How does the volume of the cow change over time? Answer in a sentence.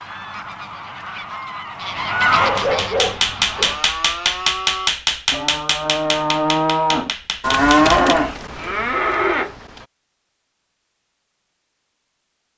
The loudness of the cow goes up, then down.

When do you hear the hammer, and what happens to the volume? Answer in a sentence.
The hammer can be heard from 2.4 to 8.2 s, getting quieter.